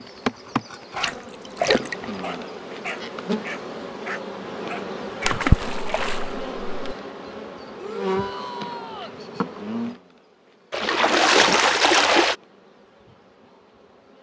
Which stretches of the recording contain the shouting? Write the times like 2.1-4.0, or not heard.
7.8-9.2.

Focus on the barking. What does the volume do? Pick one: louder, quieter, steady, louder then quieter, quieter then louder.
steady.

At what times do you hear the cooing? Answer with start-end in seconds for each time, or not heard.
not heard.